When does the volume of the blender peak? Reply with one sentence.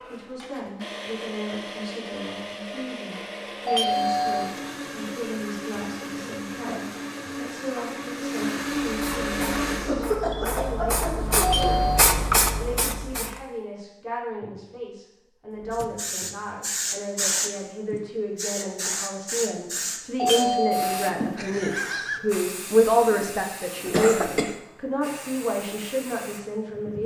The loudest moment of the blender is at 9 seconds.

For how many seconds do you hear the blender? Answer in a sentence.
You can hear the blender for 10 seconds altogether.